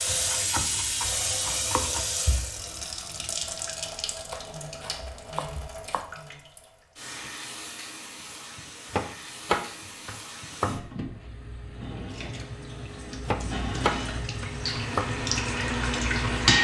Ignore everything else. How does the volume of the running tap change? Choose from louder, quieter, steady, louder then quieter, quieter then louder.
quieter then louder.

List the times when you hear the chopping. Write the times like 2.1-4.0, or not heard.
0.1-2.1, 4.3-6.0, 8.9-10.8, 13.2-15.1.